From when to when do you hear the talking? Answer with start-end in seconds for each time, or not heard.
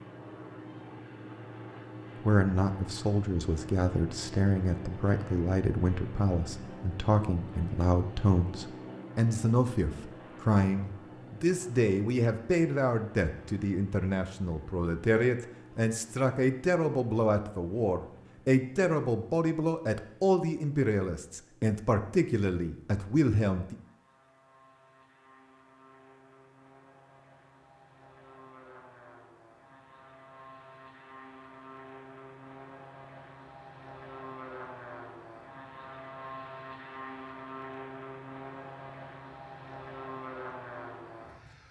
2.2-23.8.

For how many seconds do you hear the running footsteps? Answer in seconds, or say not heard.
not heard.